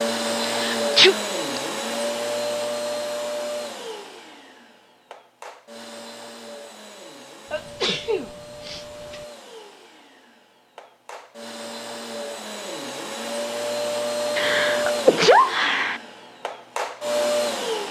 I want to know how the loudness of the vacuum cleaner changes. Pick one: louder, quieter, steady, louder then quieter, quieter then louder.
quieter then louder.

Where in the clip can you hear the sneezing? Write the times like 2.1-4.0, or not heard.
0.5-1.6, 7.5-9.2, 14.3-16.0.